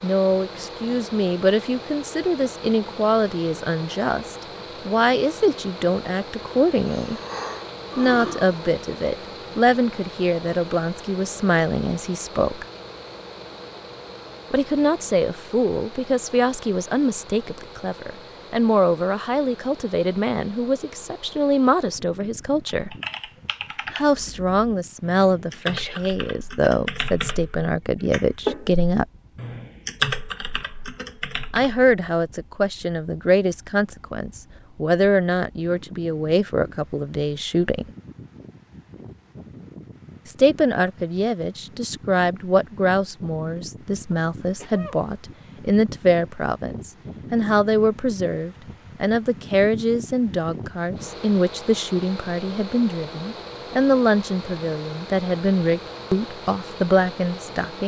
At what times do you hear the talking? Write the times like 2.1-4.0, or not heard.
0.0-7.2, 8.0-12.7, 14.5-22.9, 23.9-29.1, 31.5-37.9, 40.2-57.8.